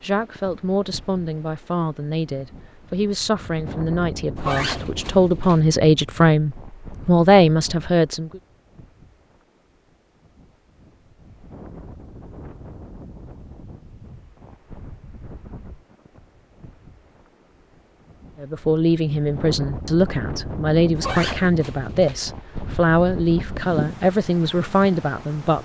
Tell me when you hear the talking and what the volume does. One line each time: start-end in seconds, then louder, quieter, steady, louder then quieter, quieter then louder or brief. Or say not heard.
0.0-8.4 louder
18.4-25.5 steady.